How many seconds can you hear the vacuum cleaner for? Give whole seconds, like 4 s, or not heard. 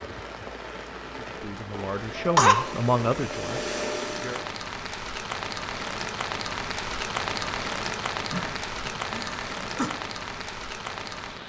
2 s.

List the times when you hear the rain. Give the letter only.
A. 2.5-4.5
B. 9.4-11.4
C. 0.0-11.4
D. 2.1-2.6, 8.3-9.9
C.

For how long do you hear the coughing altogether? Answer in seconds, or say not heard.
2 s.